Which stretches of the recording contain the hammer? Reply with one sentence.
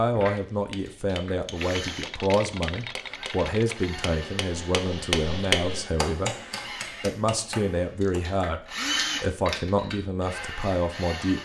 You can hear the hammer from 0.3 to 8.3 s.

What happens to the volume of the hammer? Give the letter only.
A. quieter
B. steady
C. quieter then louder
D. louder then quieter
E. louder
D.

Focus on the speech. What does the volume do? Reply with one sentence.
The volume of the speech stays about the same.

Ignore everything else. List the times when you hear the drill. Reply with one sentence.
You can hear the drill from 0.1 to 11.3 s.